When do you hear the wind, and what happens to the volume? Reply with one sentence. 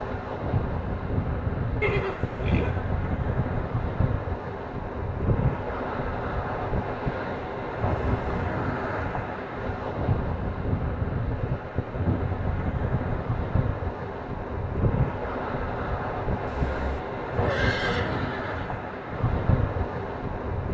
The wind can be heard from 0.0 to 20.6 s, at a steady volume.